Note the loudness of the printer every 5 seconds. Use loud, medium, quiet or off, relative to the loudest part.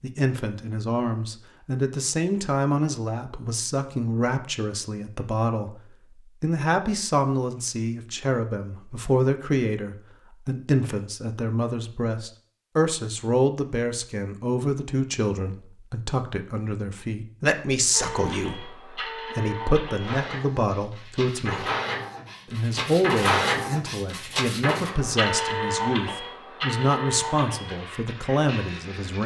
off, off, off, medium, loud, loud.